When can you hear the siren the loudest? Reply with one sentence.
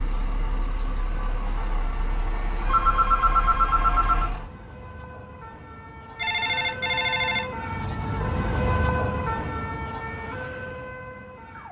The loudest moment of the siren is at 9 seconds.